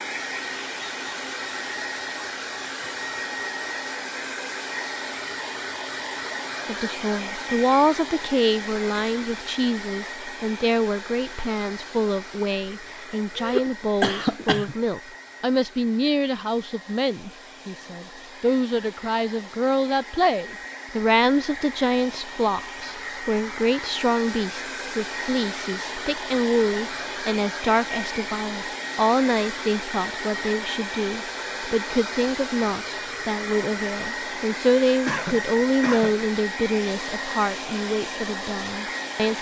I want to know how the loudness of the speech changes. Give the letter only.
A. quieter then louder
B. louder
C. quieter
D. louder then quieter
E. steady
E.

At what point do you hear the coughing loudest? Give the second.
14 s.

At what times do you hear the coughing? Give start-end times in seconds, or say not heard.
13.3-14.8, 35.0-36.2.